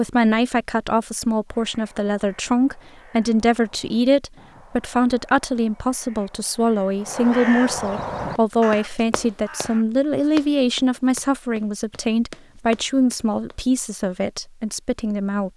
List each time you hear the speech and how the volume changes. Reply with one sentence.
You can hear the speech from 0.0 to 15.5 s, at a steady volume.